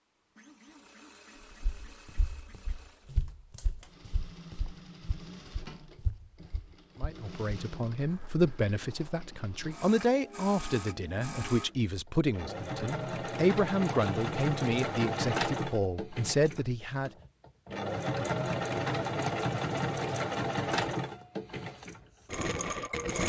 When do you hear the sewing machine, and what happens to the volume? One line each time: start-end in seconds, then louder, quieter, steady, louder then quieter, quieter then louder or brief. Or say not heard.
0.1-23.2 louder.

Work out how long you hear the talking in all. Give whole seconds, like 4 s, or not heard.
10 s.